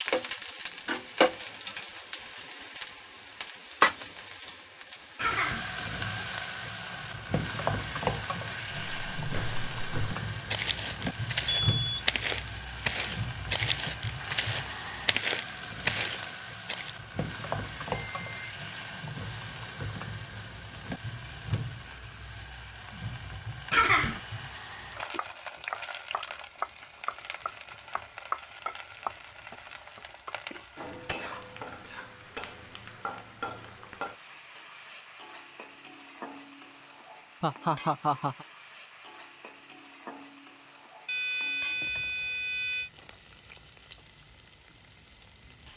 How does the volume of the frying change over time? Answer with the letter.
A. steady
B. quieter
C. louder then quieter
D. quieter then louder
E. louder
B.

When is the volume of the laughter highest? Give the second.
24 s.